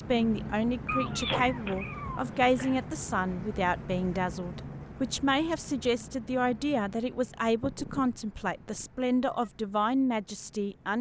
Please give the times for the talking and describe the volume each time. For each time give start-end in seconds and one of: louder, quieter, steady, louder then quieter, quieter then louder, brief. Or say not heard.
0.1-10.9 steady.